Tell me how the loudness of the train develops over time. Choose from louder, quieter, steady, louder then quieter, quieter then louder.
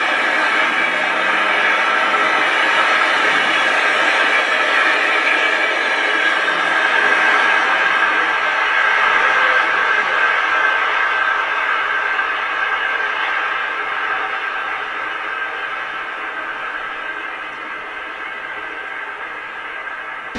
quieter.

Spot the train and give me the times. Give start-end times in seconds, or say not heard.
0.0-20.3.